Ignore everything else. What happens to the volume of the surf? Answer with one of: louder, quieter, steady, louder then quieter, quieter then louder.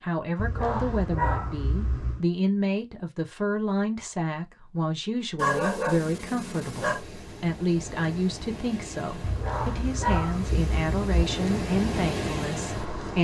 louder.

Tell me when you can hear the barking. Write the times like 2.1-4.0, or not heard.
0.3-2.2, 5.3-7.0, 9.2-11.2.